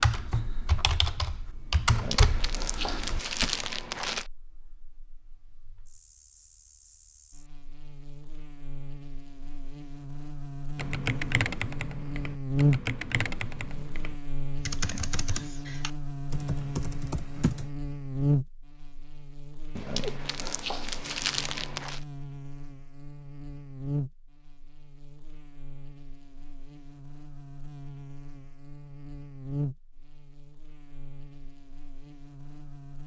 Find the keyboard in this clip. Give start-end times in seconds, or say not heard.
0.0-3.5, 10.8-17.7.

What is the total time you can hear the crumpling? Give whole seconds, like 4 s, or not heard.
5 s.